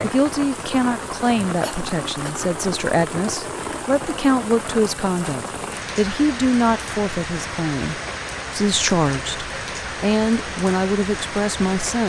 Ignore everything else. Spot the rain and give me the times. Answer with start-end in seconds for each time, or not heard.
0.0-12.0.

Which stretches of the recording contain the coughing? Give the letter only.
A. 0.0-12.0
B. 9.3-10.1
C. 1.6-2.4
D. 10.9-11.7
C.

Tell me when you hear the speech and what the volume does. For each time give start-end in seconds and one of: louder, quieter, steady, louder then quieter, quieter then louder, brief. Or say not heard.
0.0-12.0 steady.